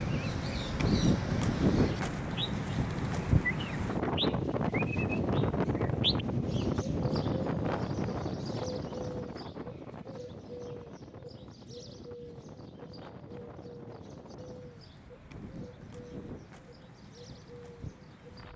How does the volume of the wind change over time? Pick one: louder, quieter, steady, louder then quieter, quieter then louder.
quieter.